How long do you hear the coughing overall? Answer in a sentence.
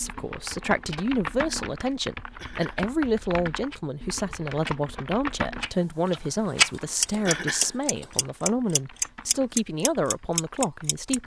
The coughing can be heard for 2 seconds in total.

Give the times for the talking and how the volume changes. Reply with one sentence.
You can hear the talking from 0.0 to 11.2 s, at a steady volume.